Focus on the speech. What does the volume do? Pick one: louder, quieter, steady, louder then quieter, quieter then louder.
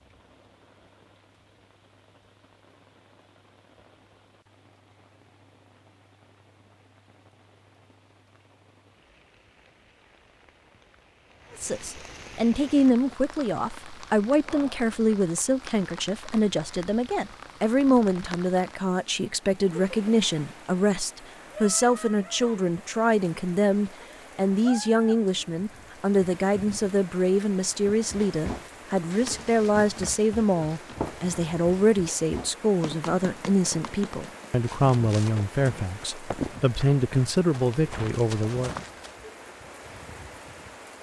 steady.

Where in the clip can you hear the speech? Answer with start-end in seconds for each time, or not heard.
11.6-38.8.